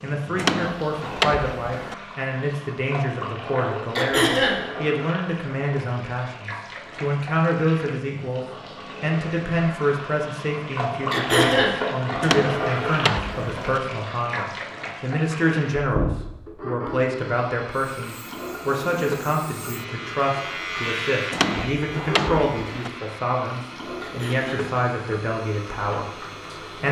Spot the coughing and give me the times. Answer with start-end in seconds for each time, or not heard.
4.0-4.6, 11.1-11.8, 24.0-24.6.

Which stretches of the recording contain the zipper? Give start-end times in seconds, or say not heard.
not heard.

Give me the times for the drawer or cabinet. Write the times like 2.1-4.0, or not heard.
0.3-1.9, 12.2-13.8, 21.3-22.9.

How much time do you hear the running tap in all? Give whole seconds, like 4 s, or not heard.
27 s.